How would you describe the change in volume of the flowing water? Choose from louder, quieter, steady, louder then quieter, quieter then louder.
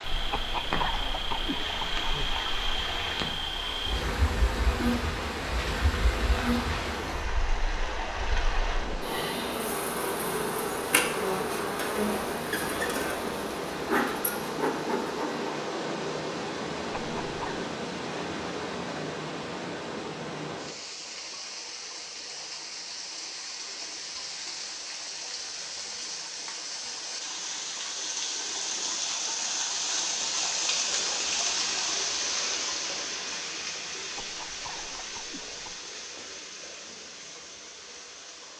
steady.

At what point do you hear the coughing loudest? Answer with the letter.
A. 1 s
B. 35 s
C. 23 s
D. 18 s
A.